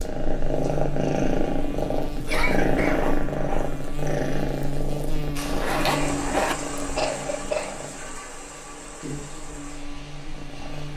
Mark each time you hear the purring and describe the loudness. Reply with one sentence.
The purring can be heard from 0.0 to 10.9 s, getting quieter.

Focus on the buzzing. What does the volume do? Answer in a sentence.
The volume of the buzzing goes down.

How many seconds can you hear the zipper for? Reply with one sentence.
The zipper can be heard for 2 seconds in total.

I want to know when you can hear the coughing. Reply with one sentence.
You can hear the coughing from 2.2 to 3.0 s and from 5.9 to 7.8 s.